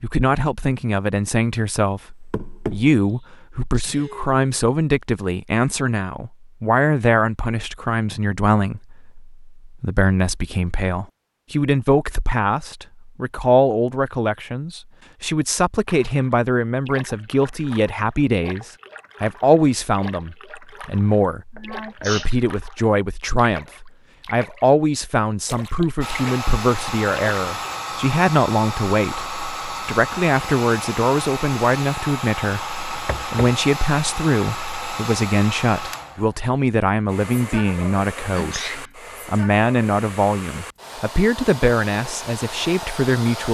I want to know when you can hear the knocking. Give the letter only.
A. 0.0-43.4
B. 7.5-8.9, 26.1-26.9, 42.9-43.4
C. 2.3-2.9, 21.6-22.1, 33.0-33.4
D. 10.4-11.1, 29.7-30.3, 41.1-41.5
C.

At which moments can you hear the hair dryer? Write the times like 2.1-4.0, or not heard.
26.0-43.4.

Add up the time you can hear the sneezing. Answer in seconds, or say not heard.
3 s.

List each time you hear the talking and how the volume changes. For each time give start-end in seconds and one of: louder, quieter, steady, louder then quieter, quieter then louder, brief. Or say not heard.
0.0-43.4 steady.